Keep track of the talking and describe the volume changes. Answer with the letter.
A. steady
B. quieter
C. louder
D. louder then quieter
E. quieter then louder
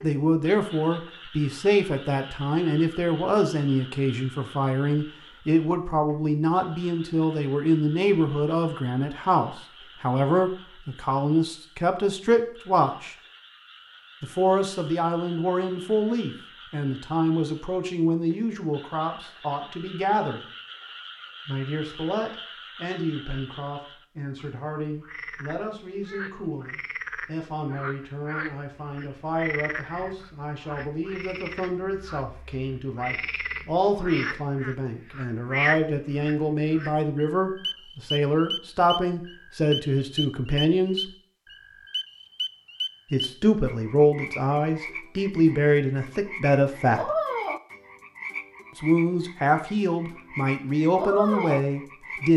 E.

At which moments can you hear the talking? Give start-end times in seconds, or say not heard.
0.0-13.2, 14.2-20.4, 21.4-41.1, 43.1-47.1, 48.8-52.3.